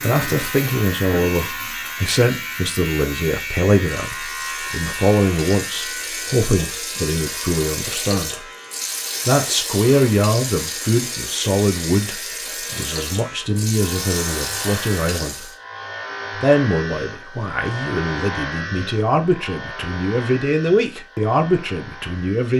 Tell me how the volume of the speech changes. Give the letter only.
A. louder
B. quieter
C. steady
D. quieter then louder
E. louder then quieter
C.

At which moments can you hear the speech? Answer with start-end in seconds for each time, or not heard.
0.0-8.4, 9.2-15.4, 16.4-22.5.